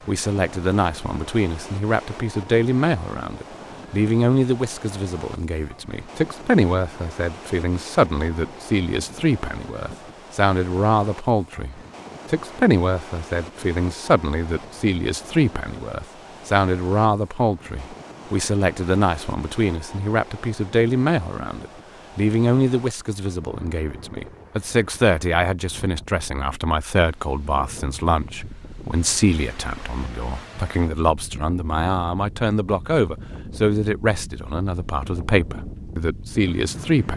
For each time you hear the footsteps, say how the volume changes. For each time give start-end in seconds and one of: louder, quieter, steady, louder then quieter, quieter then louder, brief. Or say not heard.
not heard.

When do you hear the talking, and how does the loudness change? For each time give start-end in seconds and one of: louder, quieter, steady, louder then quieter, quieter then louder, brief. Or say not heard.
0.1-37.1 steady.